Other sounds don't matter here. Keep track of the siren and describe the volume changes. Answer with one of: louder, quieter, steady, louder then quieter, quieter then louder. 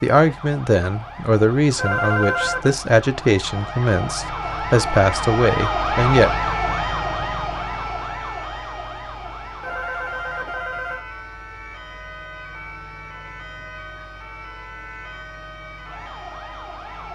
louder then quieter.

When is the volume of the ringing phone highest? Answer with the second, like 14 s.
2 s.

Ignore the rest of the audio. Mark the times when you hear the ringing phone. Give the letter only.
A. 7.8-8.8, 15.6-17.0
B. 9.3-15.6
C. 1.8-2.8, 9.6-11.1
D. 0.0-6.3
C.